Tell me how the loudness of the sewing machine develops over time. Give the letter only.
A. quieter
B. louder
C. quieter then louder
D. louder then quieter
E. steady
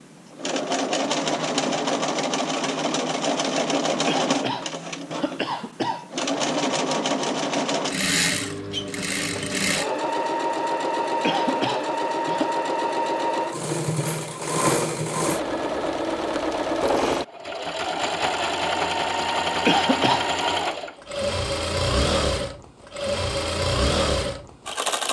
E.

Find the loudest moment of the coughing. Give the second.
20 s.